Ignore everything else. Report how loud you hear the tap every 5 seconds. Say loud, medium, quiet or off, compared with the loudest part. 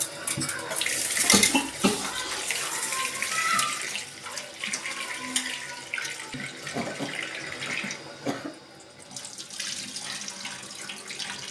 loud, medium, medium.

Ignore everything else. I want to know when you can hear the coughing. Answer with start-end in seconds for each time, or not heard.
1.2-2.5, 6.7-8.6.